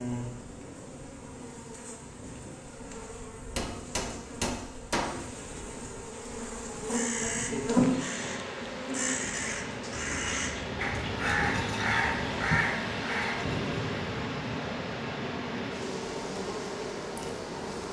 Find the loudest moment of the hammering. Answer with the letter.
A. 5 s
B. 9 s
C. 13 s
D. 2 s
A.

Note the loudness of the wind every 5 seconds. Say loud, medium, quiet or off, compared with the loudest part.
medium, medium, loud, medium.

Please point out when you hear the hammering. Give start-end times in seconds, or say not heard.
3.5-5.2.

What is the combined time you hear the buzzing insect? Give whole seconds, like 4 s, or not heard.
18 s.